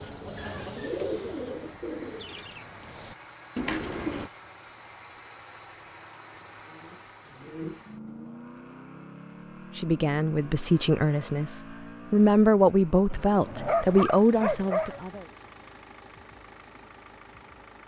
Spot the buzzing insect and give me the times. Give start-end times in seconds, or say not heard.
not heard.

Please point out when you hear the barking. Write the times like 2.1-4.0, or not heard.
13.1-15.0.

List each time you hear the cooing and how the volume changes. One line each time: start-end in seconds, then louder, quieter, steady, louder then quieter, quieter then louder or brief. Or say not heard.
0.0-4.3 quieter then louder
6.7-8.3 brief.